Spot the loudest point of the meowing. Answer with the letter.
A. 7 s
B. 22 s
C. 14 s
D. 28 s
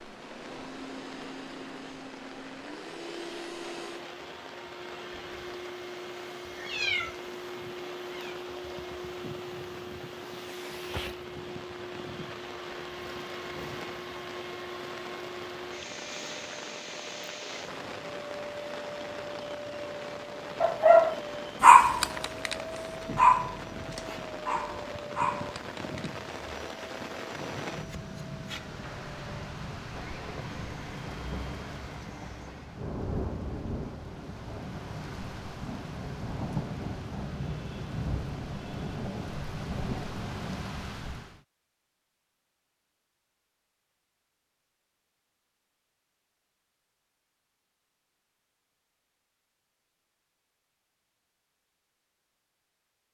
A.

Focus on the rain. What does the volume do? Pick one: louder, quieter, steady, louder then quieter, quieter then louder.
louder.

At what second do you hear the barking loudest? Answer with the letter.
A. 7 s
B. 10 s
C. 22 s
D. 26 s
C.